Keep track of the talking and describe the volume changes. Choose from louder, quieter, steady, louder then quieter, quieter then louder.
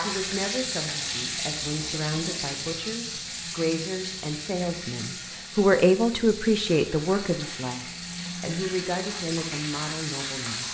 louder then quieter.